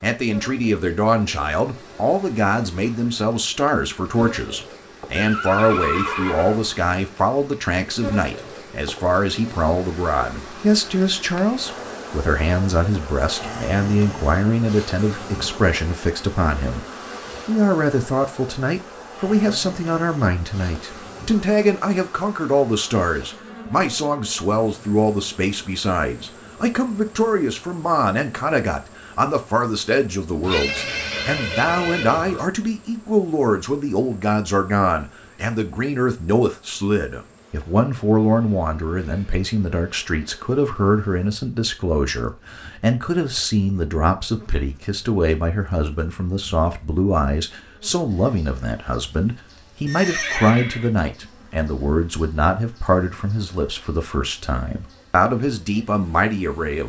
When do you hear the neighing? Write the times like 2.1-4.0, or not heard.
5.2-6.7, 30.4-32.5, 49.9-50.9.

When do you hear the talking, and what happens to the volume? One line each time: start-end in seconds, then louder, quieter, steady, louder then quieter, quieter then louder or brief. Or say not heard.
0.0-56.8 steady.